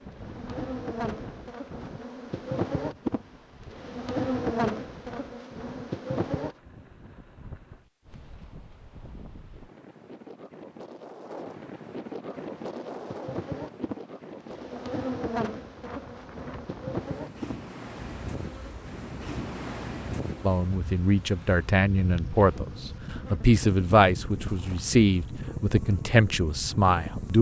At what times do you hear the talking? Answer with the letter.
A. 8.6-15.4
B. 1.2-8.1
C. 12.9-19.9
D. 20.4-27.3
D.